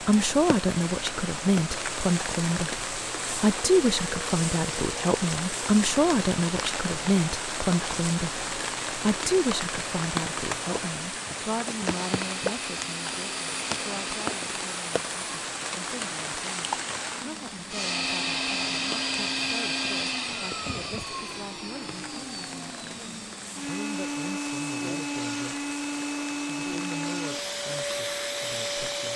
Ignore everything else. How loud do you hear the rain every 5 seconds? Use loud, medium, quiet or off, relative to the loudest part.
loud, loud, loud, loud, medium, medium.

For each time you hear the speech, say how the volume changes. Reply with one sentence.
You can hear the speech from 0.0 to 25.6 s, getting quieter; and briefly from 26.4 to 29.1 s.